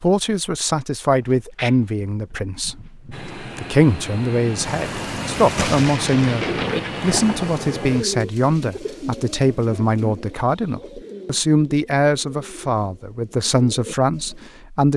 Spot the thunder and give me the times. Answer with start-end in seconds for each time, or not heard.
4.6-7.6.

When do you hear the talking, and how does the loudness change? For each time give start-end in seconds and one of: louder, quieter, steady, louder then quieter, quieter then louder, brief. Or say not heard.
0.0-14.9 steady.